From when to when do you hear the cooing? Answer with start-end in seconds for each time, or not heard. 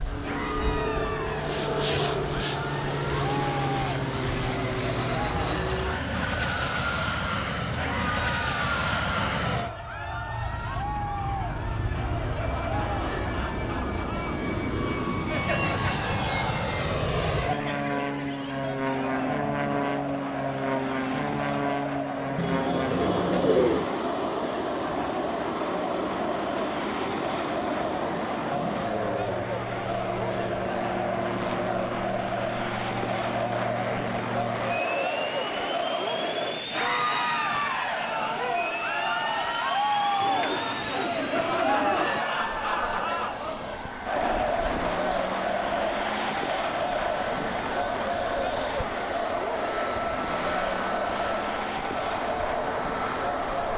22.4-23.9, 40.2-42.2.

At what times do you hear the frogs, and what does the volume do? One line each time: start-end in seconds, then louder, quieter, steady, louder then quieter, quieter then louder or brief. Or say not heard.
not heard.